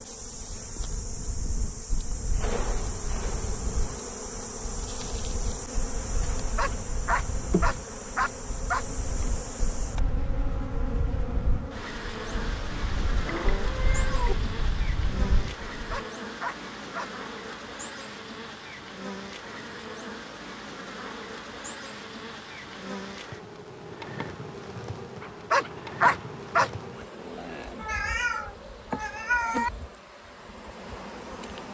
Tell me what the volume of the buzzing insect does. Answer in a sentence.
The loudness of the buzzing insect stays about the same.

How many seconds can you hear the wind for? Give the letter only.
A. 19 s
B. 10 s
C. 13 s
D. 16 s
D.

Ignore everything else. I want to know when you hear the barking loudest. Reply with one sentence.
The loudest moment of the barking is at 26 seconds.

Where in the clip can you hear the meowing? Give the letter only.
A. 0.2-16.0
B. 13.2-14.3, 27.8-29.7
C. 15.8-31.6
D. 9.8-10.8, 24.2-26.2
B.